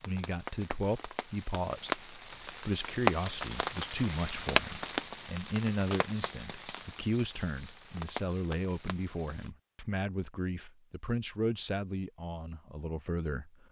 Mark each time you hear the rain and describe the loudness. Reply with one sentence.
You can hear the rain from 0.0 to 9.5 s, getting louder then quieter.